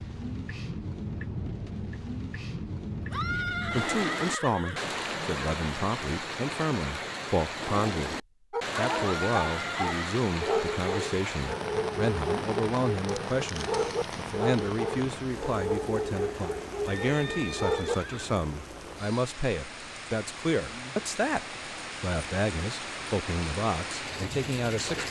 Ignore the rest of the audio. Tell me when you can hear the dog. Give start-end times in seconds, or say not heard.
8.5-17.9.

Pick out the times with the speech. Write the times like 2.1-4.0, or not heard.
3.7-8.2, 8.8-25.0.